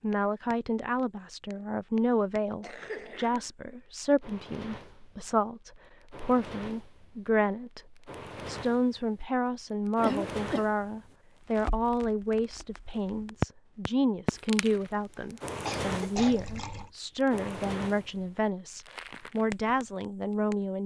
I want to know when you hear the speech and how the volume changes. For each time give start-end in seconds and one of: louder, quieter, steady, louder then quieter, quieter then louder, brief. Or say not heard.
0.0-20.8 steady.